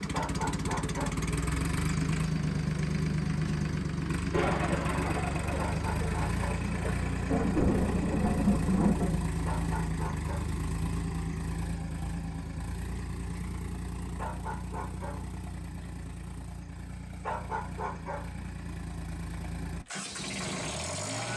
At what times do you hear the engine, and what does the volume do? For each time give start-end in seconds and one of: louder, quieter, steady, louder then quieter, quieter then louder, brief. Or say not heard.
0.0-21.3 quieter.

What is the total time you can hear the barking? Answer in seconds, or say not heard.
5 s.